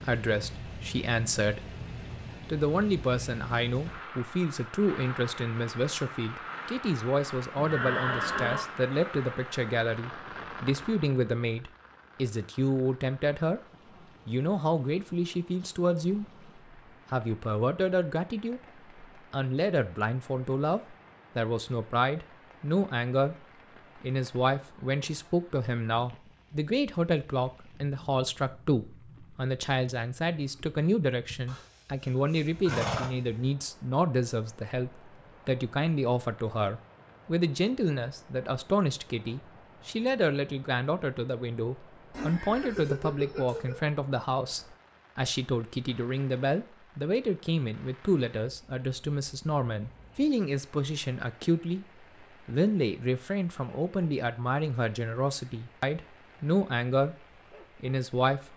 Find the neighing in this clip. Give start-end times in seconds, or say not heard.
7.5-8.7, 31.4-33.4, 42.1-43.9.